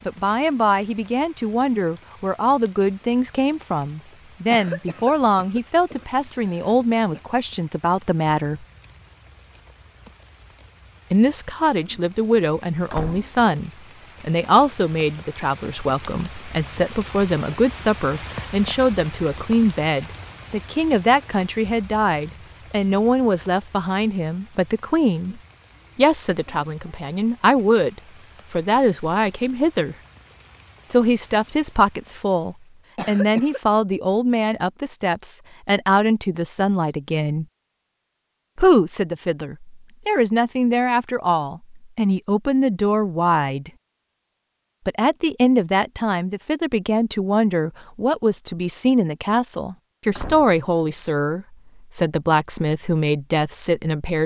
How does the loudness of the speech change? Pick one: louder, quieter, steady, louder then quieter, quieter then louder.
steady.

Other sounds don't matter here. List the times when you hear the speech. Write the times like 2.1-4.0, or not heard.
0.1-8.7, 11.1-29.9, 30.9-37.5, 38.5-43.7, 44.9-54.2.